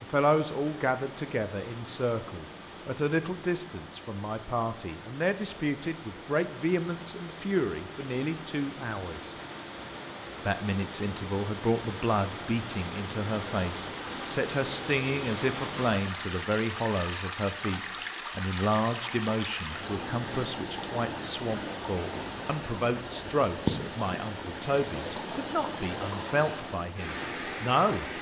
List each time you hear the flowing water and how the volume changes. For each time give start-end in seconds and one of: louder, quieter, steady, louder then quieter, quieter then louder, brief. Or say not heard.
0.0-28.1 louder.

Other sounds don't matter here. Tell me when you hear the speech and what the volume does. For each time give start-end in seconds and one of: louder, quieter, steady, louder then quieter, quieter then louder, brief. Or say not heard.
0.0-9.3 steady
10.4-28.1 steady.